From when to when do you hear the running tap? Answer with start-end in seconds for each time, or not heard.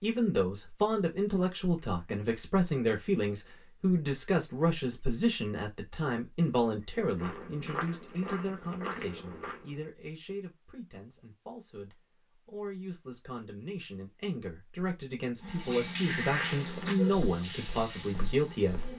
15.4-18.9.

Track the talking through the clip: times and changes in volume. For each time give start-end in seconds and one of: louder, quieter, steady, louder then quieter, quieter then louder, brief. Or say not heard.
0.0-18.9 quieter then louder.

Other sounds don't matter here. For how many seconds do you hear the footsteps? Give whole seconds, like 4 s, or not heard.
5 s.